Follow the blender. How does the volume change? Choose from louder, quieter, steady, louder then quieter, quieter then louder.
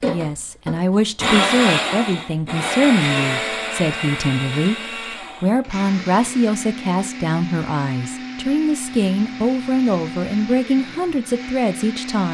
quieter.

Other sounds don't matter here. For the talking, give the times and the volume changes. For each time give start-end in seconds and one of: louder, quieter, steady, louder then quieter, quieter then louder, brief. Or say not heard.
0.1-12.2 steady.